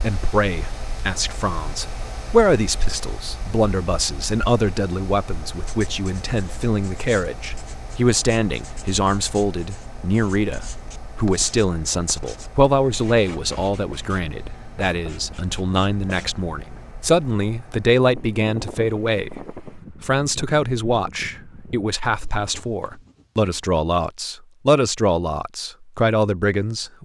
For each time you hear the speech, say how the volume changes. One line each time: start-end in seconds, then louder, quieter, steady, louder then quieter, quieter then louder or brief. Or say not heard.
0.0-26.9 steady.